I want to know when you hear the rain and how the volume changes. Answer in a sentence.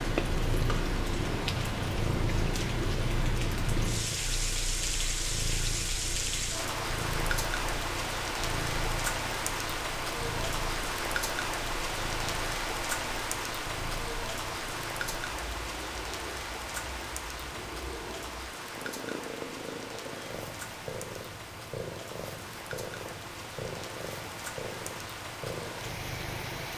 You can hear the rain from 0.0 to 26.7 s, getting quieter.